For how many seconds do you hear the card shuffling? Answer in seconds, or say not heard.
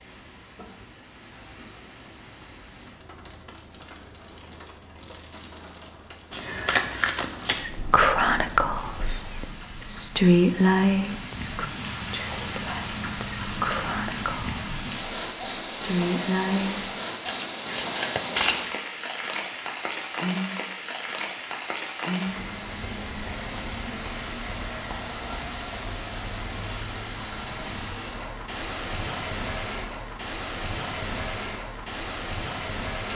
3 s.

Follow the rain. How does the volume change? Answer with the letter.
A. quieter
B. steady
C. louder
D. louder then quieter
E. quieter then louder
C.